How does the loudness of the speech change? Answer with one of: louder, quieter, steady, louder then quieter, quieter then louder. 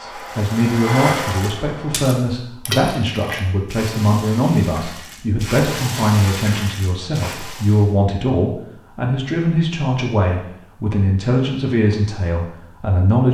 steady.